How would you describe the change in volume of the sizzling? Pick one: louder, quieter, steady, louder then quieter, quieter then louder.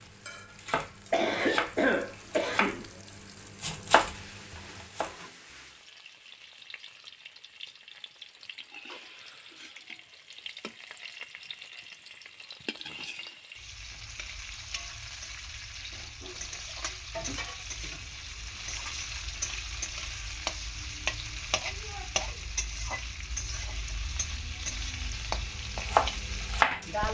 louder.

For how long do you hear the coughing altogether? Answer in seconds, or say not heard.
2 s.